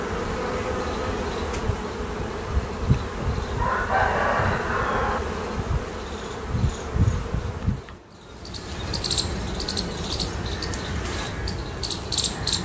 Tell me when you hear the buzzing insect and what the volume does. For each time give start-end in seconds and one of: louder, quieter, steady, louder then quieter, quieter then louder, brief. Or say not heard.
0.0-12.6 steady.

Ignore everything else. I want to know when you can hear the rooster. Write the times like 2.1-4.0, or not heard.
3.2-5.2.